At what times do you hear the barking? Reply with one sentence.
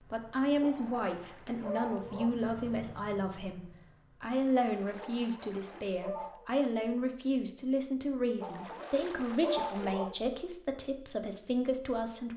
You can hear the barking from 0.6 to 2.4 s, from 5.0 to 6.5 s and from 8.4 to 10.2 s.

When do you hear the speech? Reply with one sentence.
The speech can be heard from 0.0 to 12.3 s.